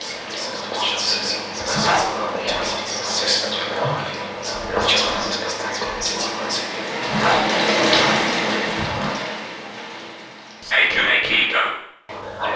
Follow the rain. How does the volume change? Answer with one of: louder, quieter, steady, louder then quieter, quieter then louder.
louder then quieter.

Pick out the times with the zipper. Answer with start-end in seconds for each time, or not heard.
1.6-2.7, 7.0-9.2.